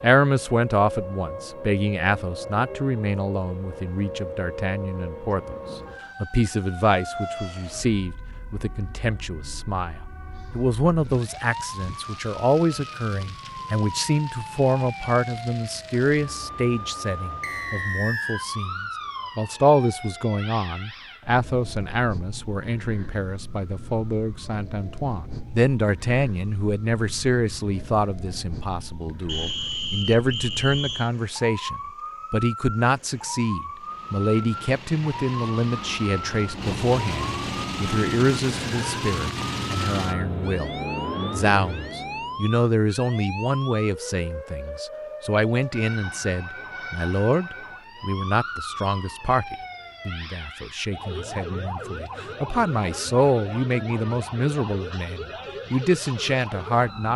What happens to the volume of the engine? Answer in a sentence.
The loudness of the engine goes up.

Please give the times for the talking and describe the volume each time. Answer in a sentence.
The talking can be heard from 0.0 to 57.1 s, at a steady volume.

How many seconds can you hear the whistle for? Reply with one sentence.
The whistle can be heard for 3 seconds in total.